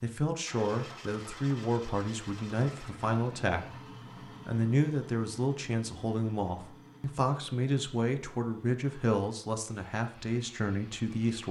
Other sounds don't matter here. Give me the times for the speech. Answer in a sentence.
You can hear the speech from 0.0 to 11.4 s.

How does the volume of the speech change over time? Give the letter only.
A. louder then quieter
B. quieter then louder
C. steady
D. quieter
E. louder
C.